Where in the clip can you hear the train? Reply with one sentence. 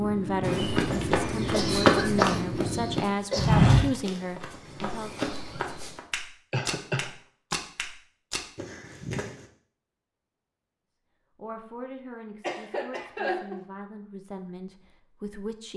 The train can be heard from 0.0 to 3.0 s.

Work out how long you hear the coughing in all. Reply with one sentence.
You can hear the coughing for 4 seconds altogether.